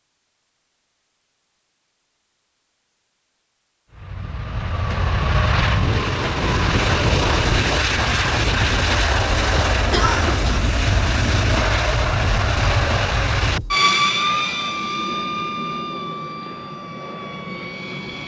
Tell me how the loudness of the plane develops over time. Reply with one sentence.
The loudness of the plane goes down.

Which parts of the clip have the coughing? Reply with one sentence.
The coughing can be heard from 9.9 to 10.6 s.